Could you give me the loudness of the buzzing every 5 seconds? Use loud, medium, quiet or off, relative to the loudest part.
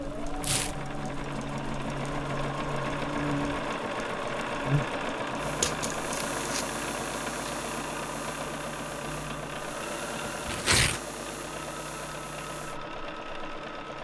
loud, medium, medium.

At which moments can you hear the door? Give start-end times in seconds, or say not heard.
not heard.